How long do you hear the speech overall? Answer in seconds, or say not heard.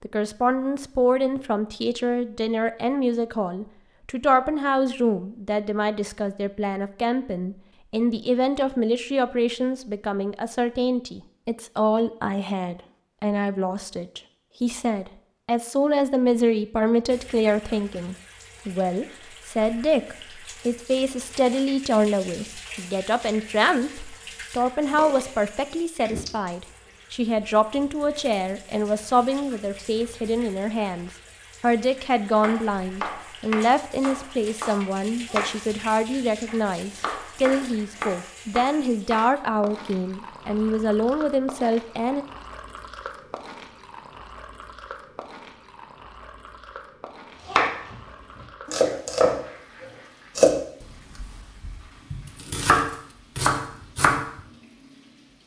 42 s.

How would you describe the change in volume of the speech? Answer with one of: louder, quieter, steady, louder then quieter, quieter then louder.
steady.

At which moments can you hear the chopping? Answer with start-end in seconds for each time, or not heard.
32.4-39.4, 47.5-54.5.